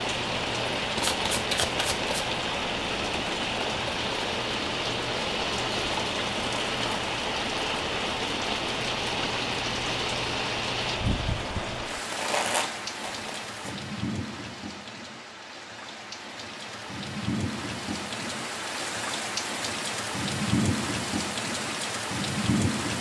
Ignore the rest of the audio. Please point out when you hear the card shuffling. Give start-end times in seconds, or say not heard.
0.9-2.2, 12.1-13.8.